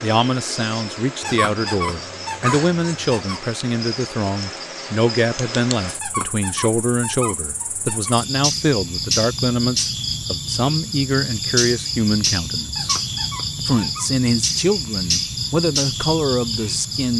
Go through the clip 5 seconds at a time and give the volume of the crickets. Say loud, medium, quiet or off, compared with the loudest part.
medium, loud, loud, loud.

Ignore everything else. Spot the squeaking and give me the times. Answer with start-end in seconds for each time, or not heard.
1.2-3.4, 6.0-8.2, 12.8-14.1.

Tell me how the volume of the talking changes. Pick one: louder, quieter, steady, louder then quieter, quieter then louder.
steady.